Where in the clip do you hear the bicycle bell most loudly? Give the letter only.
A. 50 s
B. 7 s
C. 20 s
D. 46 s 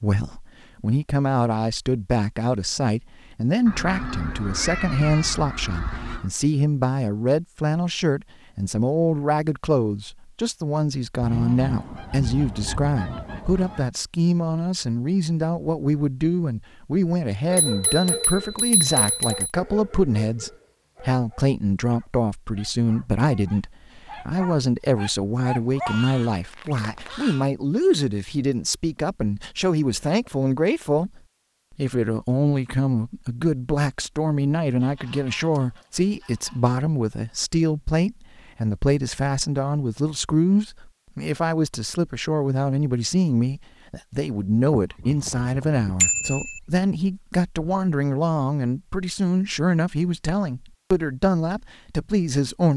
D.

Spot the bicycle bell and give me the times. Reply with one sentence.
The bicycle bell can be heard from 17.5 to 19.5 s and from 46.0 to 46.6 s.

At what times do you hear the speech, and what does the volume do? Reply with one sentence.
The speech can be heard from 0.0 to 52.7 s, at a steady volume.